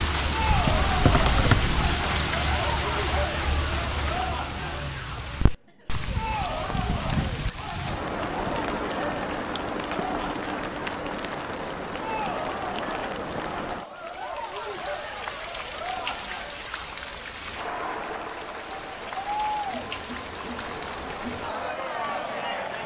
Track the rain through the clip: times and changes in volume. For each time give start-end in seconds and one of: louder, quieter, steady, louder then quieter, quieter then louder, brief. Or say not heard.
0.0-22.8 quieter.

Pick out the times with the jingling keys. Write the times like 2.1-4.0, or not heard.
0.7-1.9.